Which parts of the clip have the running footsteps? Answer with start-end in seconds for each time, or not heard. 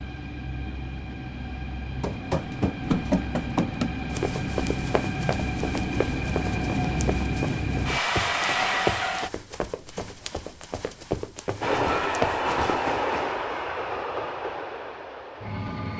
2.0-13.0.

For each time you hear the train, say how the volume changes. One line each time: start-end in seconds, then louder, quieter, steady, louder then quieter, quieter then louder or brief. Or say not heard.
0.0-9.3 louder
11.6-15.9 quieter.